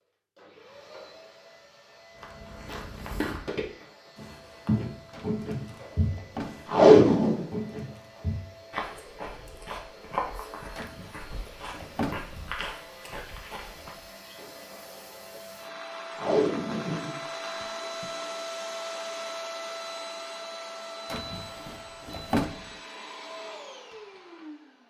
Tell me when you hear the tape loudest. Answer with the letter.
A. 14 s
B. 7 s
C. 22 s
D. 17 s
B.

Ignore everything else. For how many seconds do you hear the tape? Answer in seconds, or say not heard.
3 s.